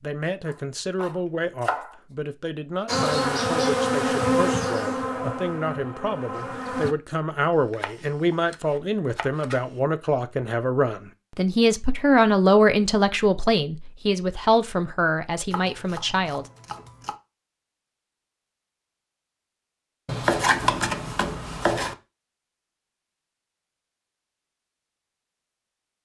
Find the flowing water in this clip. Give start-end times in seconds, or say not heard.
not heard.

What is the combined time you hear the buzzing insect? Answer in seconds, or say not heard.
4 s.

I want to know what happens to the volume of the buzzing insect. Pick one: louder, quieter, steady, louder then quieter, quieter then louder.
quieter.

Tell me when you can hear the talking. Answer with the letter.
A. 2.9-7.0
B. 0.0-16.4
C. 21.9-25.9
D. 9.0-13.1
B.